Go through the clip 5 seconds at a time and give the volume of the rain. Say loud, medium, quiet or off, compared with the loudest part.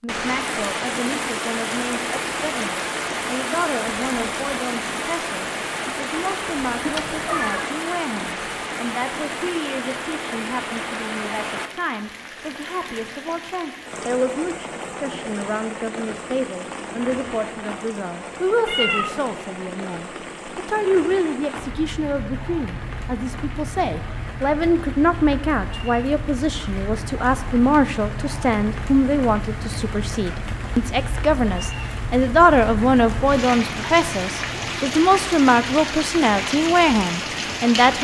loud, loud, medium, medium, medium, medium, loud, loud.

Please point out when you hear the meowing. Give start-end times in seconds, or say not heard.
6.8-7.7, 18.6-19.1, 33.4-34.8.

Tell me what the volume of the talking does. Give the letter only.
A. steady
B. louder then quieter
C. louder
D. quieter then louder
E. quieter
C.